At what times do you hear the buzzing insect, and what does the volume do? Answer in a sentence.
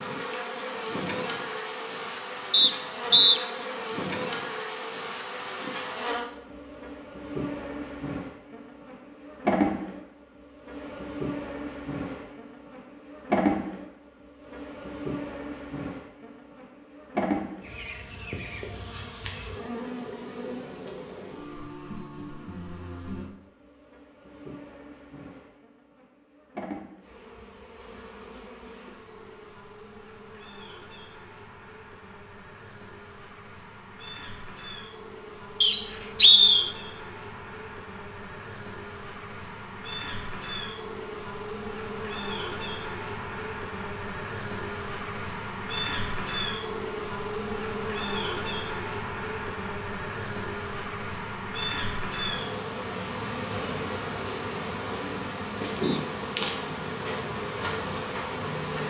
You can hear the buzzing insect from 0.0 to 58.8 s, getting quieter then louder.